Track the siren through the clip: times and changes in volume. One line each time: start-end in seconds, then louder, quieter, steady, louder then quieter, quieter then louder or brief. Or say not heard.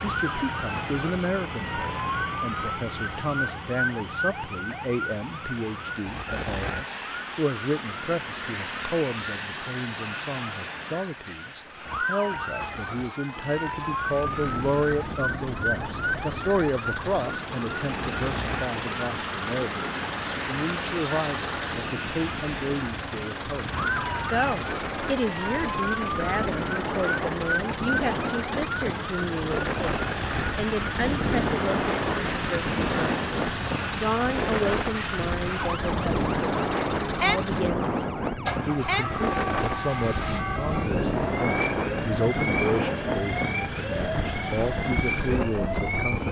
0.0-46.2 steady.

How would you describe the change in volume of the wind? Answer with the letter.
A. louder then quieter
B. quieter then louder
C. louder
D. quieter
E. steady
C.